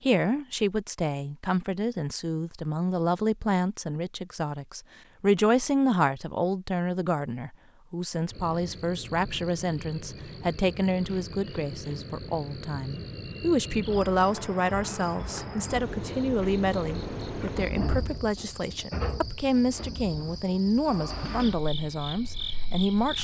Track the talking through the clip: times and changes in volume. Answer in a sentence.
You can hear the talking from 0.0 to 23.1 s, at a steady volume.